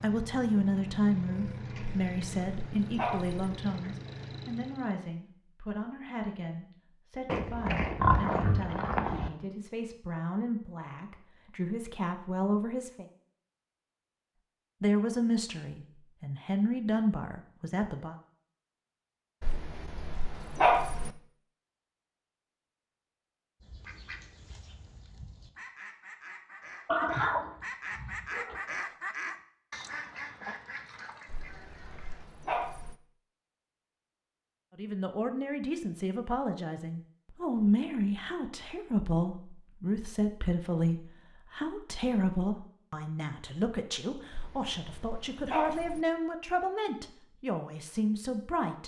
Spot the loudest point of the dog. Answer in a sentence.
The loudest moment of the dog is at 21 seconds.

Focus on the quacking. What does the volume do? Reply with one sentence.
The loudness of the quacking goes up, then down.